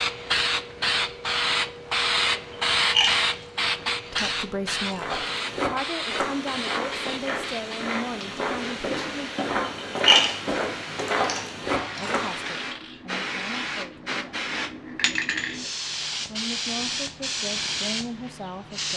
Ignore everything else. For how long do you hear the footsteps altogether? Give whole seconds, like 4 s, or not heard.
8 s.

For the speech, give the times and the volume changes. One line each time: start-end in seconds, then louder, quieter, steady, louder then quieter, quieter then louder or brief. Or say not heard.
4.0-9.3 steady
11.9-18.9 quieter then louder.